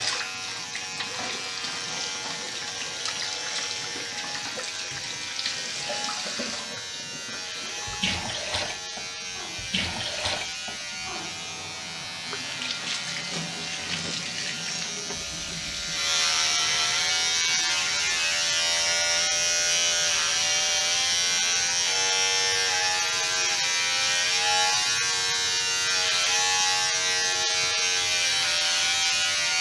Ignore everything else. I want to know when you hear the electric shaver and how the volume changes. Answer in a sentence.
The electric shaver can be heard from 0.0 to 29.5 s, getting louder.